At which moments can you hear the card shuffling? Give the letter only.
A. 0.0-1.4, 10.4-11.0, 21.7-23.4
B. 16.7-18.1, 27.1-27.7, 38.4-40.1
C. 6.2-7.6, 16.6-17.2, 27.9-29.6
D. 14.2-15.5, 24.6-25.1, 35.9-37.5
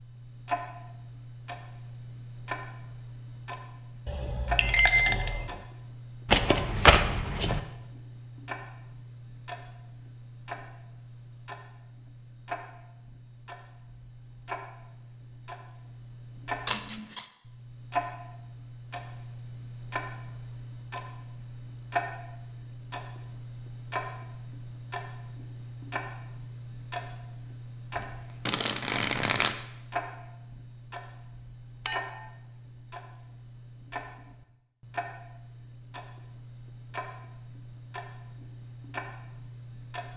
C.